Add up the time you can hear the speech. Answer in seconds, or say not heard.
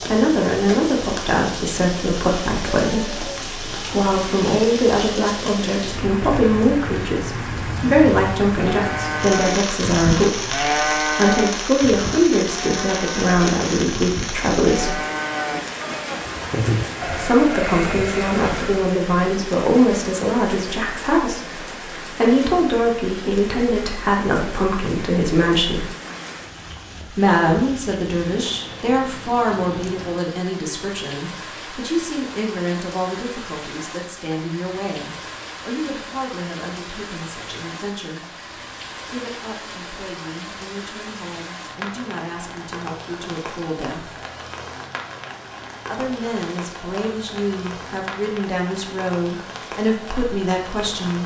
46 s.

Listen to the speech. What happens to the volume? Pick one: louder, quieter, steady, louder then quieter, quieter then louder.
quieter.